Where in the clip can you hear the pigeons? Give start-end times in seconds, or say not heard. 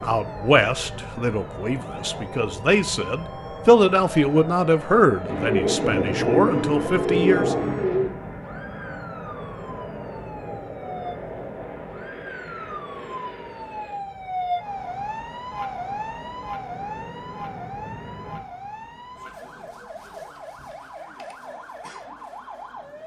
5.2-8.1.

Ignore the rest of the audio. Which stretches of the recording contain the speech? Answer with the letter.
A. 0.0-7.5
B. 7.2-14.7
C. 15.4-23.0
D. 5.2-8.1
A.